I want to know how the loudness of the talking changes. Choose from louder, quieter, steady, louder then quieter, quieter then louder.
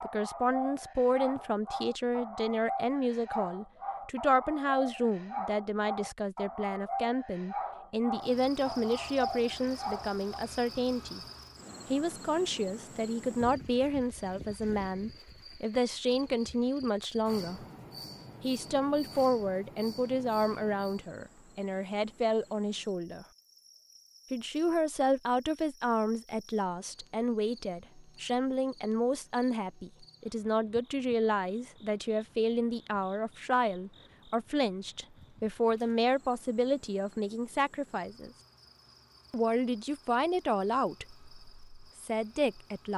steady.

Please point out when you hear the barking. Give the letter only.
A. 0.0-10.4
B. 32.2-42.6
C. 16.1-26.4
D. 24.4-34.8
A.